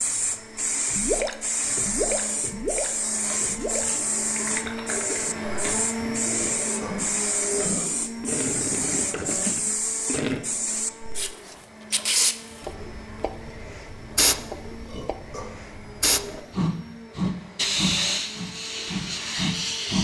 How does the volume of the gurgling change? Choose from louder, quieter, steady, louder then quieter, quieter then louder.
quieter then louder.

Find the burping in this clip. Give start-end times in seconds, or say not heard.
6.3-8.1, 14.8-15.6.